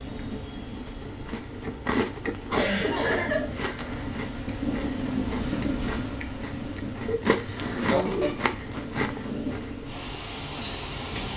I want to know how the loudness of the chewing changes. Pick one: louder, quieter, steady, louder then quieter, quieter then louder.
quieter then louder.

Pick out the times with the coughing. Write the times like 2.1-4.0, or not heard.
2.5-4.0, 7.0-8.4.